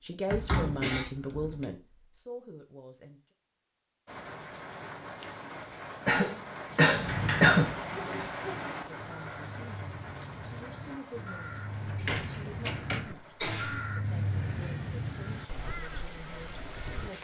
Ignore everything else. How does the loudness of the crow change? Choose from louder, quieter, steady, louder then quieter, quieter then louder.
louder then quieter.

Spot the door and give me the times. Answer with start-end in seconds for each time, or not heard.
0.2-1.6, 6.8-8.3, 11.7-13.1.